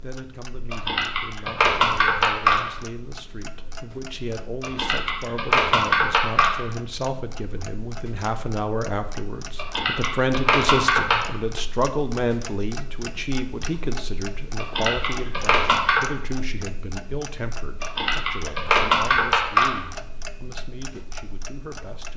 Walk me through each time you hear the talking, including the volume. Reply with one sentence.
You can hear the talking from 0.0 to 22.1 s, getting louder then quieter.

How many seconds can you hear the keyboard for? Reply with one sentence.
The keyboard can be heard for 9 seconds in total.